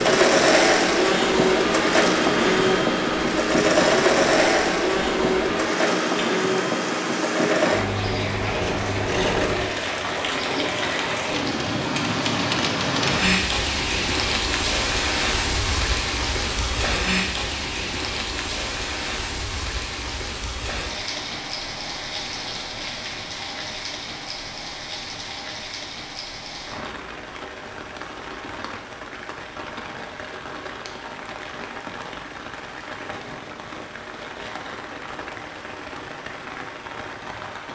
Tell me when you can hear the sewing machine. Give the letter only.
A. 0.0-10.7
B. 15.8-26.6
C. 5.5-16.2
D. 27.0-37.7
A.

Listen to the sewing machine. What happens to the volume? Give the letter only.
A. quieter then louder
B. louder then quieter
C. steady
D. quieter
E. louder
D.